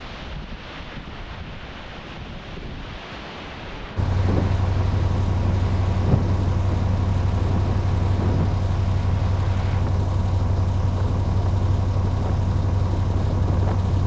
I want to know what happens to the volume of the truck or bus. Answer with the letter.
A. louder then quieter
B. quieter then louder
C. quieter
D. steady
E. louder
D.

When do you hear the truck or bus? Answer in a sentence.
You can hear the truck or bus from 4.0 to 14.0 s.